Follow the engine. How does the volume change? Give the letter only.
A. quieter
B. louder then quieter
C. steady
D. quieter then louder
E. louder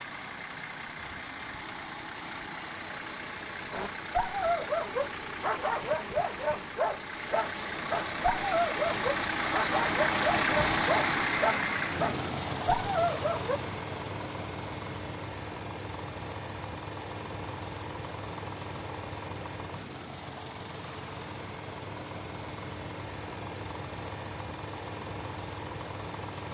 B.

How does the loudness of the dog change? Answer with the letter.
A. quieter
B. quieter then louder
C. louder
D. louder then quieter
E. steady
E.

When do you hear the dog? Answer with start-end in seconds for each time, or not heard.
3.7-13.6.